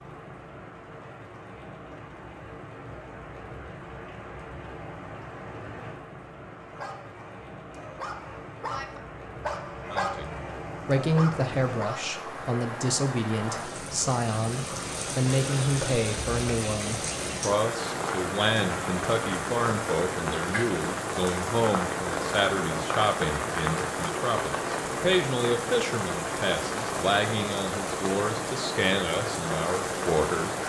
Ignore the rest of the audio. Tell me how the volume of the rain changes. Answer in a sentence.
The volume of the rain goes up.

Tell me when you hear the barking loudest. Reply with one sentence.
The loudest moment of the barking is at 10 seconds.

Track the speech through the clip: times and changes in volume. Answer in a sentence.
The speech can be heard from 9.8 to 30.6 s, at a steady volume.